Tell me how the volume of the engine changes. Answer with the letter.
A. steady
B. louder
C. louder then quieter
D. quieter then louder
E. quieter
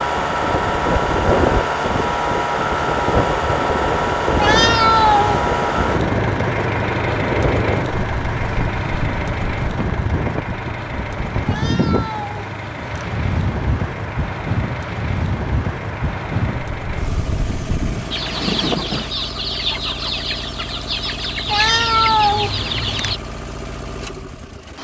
E.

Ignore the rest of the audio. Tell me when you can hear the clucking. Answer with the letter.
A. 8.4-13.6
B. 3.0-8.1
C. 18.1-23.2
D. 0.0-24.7
C.